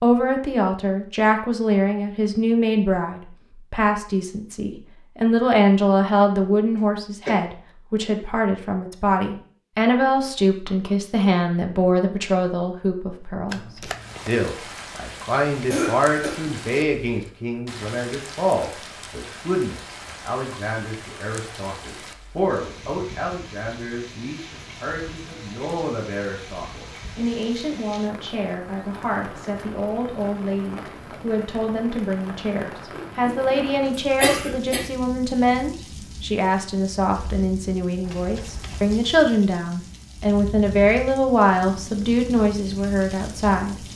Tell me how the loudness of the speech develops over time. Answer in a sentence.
The volume of the speech goes down, then up.